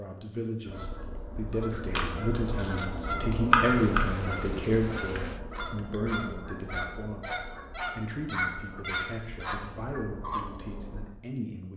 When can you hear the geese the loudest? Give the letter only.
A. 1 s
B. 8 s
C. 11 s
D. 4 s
D.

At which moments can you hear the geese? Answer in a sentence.
You can hear the geese from 0.7 to 11.1 s.